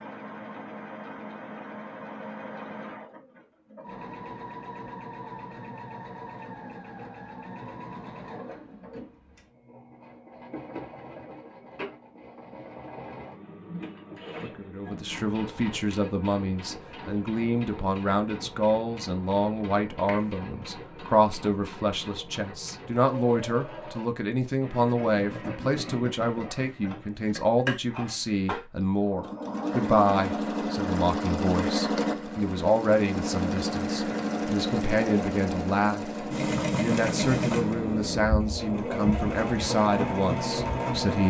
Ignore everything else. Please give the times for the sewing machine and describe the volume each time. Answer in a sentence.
The sewing machine can be heard from 0.0 to 41.2 s, getting louder.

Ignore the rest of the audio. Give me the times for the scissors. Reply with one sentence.
The scissors can't be heard in this clip.